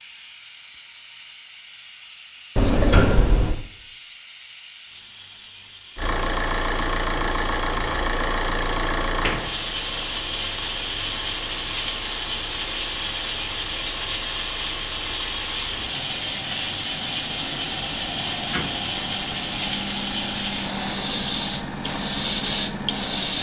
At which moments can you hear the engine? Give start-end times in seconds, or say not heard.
6.0-23.3.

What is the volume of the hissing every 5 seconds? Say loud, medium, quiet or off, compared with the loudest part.
quiet, medium, loud, loud, loud.